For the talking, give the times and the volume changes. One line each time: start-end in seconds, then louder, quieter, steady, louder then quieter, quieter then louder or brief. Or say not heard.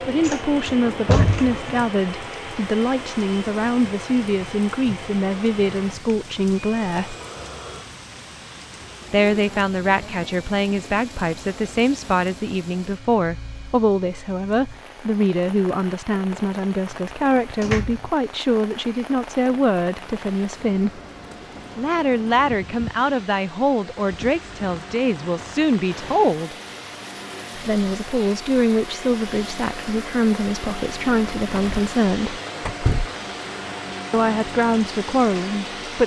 0.1-7.2 steady
9.1-21.0 steady
21.8-26.6 steady
27.6-32.4 steady
34.1-36.0 brief.